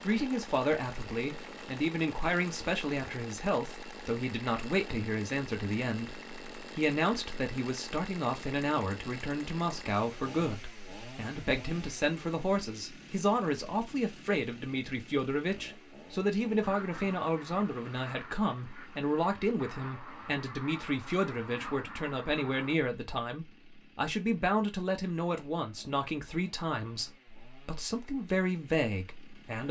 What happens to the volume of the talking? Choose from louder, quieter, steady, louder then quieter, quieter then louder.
steady.